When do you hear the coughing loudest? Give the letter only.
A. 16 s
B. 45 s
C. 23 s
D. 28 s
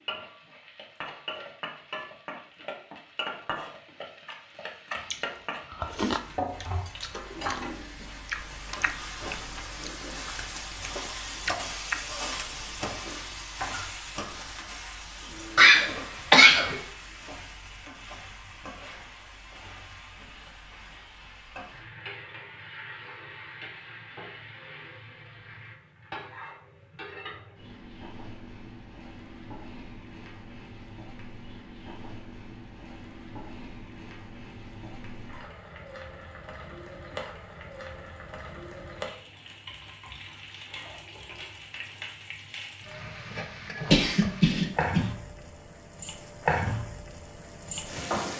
A.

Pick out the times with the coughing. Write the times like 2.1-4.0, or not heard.
15.6-16.8, 43.9-45.0.